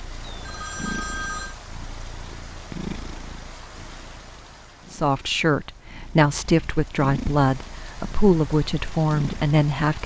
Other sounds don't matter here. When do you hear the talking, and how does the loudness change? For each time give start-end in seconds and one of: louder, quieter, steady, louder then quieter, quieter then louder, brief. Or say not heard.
4.9-10.0 steady.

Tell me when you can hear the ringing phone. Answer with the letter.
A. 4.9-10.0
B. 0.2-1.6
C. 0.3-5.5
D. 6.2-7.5
B.